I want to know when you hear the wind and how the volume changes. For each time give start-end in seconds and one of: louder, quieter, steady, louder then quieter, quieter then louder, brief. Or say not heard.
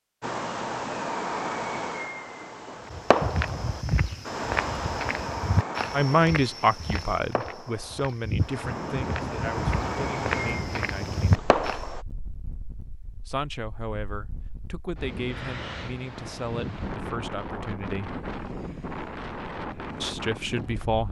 8.6-21.0 quieter then louder.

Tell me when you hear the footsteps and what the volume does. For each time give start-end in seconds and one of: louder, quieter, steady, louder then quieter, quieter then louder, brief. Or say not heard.
2.9-11.8 quieter then louder.